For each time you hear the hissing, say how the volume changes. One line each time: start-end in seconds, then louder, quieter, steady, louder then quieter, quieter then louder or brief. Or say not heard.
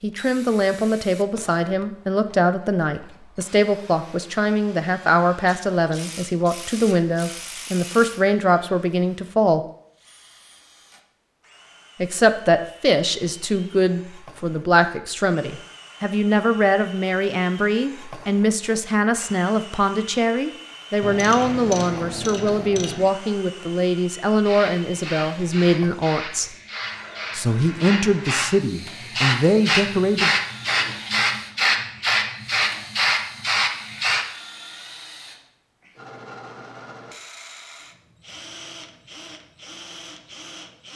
24.4-34.2 louder.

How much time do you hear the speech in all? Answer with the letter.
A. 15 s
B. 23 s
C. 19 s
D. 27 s
D.